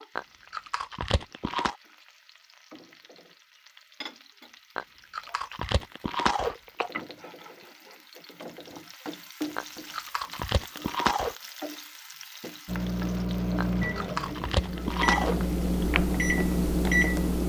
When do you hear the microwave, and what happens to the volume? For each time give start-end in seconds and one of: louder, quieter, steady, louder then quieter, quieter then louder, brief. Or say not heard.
12.7-17.4 quieter then louder.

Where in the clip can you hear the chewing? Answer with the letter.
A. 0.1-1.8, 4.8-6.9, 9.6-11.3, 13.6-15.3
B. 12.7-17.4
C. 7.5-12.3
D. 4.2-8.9
A.